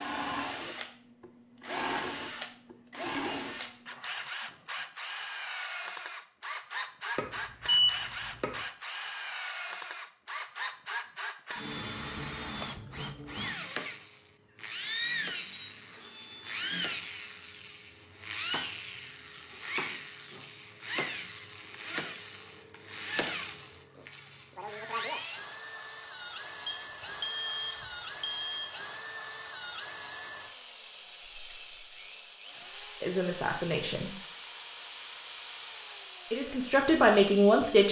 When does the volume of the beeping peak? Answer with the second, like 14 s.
8 s.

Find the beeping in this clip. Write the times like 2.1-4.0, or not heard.
7.2-8.6, 15.3-16.6, 26.6-28.5.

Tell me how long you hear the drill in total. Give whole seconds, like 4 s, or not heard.
38 s.